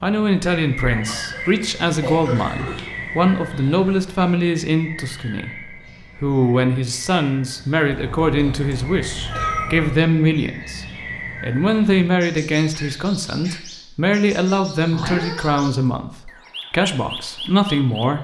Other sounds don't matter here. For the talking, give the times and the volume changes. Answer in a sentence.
You can hear the talking from 0.0 to 18.1 s, at a steady volume.